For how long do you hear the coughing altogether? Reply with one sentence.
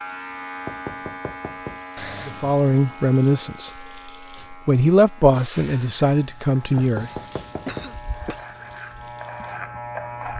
You can hear the coughing for 2 seconds altogether.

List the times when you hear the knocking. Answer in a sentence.
You can hear the knocking from 0.7 to 1.9 s and from 6.8 to 8.0 s.